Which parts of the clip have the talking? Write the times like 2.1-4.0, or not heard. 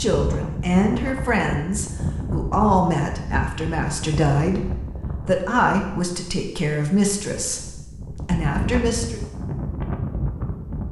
0.0-9.2.